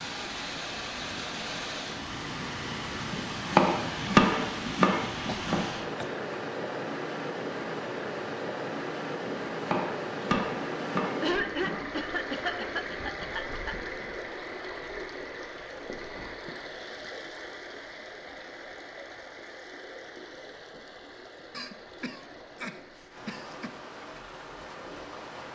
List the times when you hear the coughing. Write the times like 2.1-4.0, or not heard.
5.2-6.2, 11.2-13.8, 21.5-23.7.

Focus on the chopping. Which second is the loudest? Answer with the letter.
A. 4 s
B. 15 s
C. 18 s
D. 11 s
A.